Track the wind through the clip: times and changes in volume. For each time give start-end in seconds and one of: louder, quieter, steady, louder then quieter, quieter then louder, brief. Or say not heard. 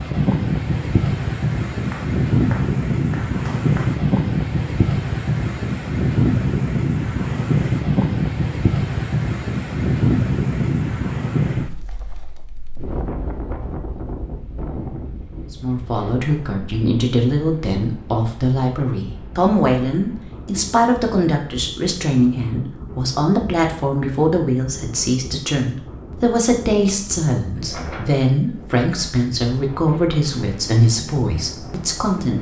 0.0-32.3 quieter.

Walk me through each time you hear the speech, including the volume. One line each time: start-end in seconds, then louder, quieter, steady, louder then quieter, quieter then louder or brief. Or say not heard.
15.5-32.3 steady.